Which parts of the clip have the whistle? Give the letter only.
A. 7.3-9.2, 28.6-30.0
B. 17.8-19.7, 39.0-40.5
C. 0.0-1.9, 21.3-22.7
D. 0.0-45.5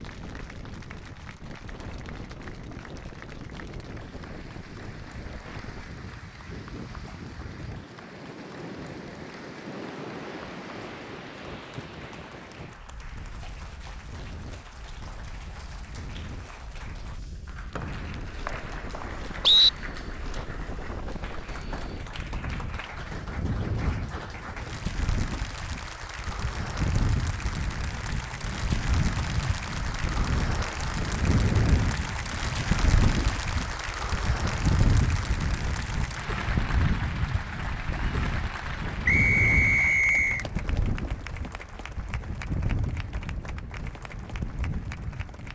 B.